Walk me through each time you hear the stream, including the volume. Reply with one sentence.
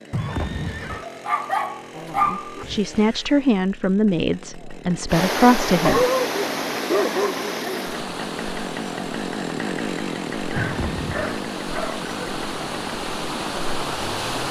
You can hear the stream from 5.0 to 14.4 s, getting quieter then louder.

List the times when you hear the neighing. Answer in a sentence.
The neighing can be heard from 0.1 to 1.1 s and from 10.6 to 11.2 s.